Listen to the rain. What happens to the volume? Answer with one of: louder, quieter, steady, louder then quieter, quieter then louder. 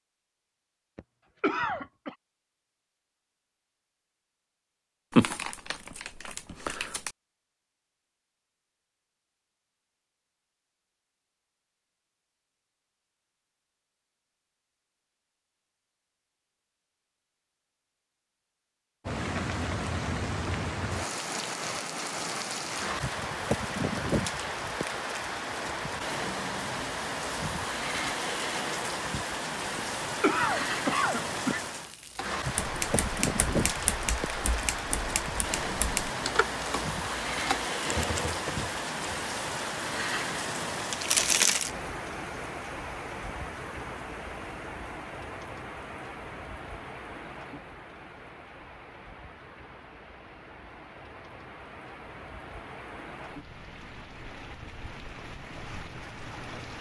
quieter.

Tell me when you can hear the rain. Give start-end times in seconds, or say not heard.
19.1-56.7.